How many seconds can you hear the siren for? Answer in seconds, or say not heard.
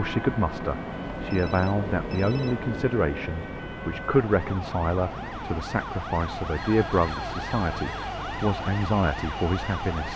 10 s.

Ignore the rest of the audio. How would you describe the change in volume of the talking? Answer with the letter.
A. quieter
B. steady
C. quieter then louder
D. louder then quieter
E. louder
B.